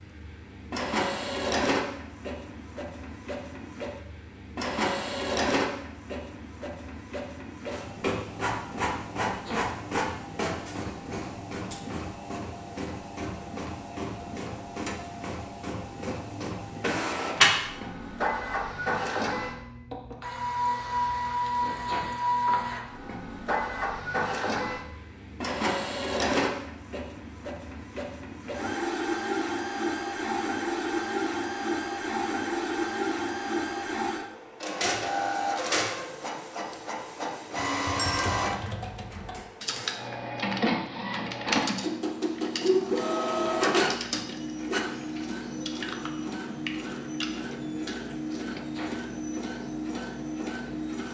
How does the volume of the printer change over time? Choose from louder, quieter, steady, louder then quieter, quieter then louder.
steady.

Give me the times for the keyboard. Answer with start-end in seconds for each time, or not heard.
37.5-48.8.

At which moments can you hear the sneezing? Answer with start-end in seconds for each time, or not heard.
9.2-9.8, 21.6-22.1, 48.5-49.0.